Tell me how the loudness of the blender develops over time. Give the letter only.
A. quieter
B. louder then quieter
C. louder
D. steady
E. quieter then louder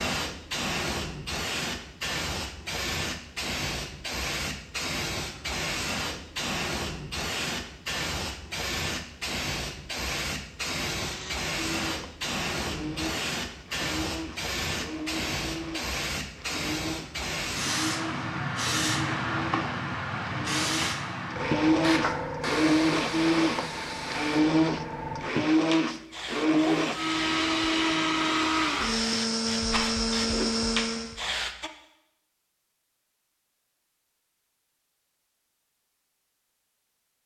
C.